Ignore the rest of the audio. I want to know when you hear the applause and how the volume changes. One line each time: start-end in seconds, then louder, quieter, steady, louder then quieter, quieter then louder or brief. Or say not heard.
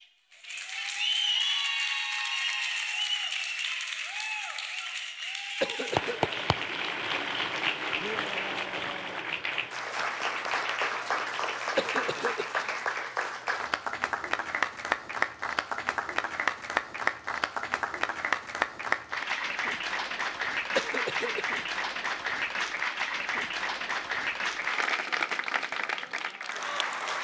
0.3-27.2 steady.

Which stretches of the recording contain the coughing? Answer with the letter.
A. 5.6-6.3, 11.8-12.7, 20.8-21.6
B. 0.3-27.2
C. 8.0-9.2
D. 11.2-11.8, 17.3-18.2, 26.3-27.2
A.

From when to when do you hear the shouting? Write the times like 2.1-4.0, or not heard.
8.0-9.2.